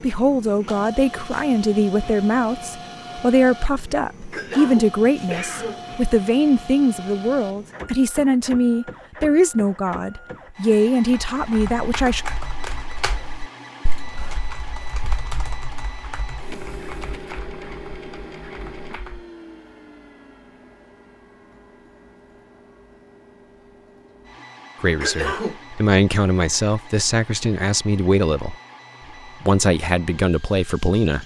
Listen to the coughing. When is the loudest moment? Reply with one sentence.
The volume of the coughing peaks at 25 seconds.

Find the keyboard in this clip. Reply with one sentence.
The keyboard can be heard from 11.3 to 19.2 s.